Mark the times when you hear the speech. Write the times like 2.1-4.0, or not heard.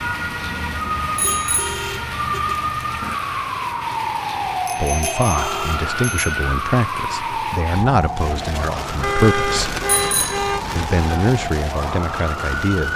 4.8-9.8, 10.8-12.9.